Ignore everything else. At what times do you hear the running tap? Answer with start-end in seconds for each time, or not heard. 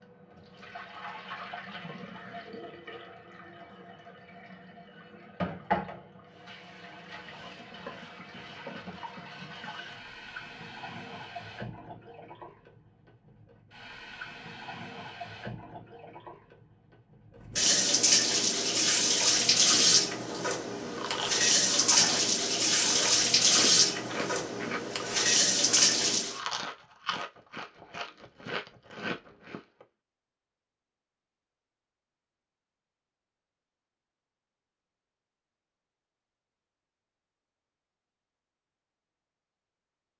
0.0-26.4.